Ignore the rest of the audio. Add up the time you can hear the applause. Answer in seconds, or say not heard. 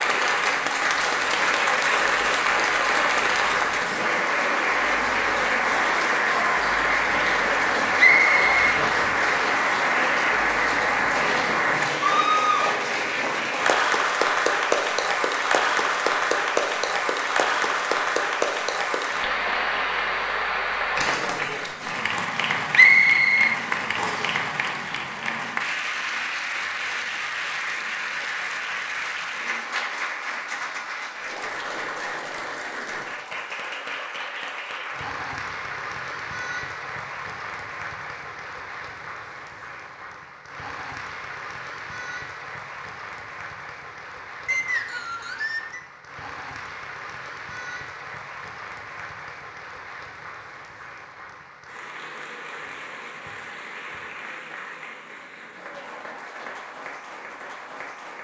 58 s.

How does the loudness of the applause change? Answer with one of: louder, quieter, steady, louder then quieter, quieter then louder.
quieter.